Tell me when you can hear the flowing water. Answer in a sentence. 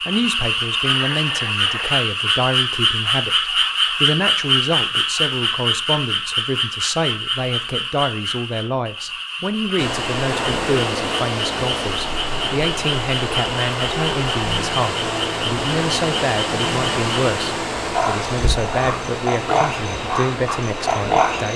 The flowing water can be heard from 9.8 to 21.5 s.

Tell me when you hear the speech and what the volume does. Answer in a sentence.
You can hear the speech from 0.1 to 21.5 s, at a steady volume.